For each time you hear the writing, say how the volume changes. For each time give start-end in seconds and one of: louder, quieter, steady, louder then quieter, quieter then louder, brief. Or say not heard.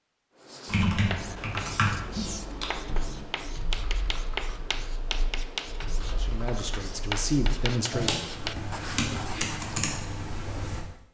0.4-10.2 steady.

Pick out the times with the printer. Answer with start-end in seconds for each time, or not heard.
not heard.